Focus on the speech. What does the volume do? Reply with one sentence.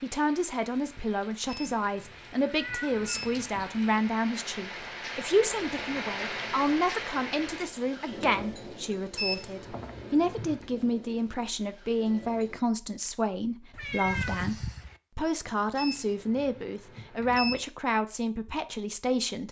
The loudness of the speech stays about the same.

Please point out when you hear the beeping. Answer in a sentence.
The beeping can be heard from 1.4 to 3.6 s, from 9.2 to 10.7 s and from 15.8 to 17.6 s.